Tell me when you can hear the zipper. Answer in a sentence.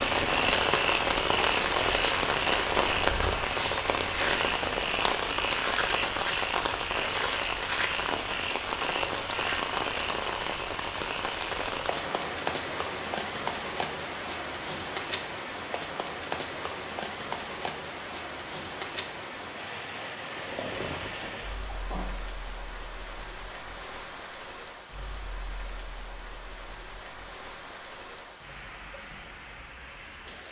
The zipper can be heard from 2.9 to 3.5 s and from 20.4 to 22.1 s.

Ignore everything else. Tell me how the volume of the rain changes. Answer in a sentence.
The loudness of the rain goes down.